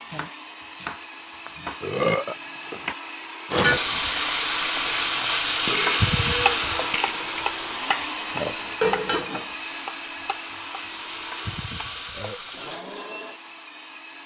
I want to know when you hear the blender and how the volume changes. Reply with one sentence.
You can hear the blender from 0.0 to 14.2 s, getting louder then quieter.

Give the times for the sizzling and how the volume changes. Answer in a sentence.
You can hear the sizzling from 3.5 to 12.8 s, getting quieter.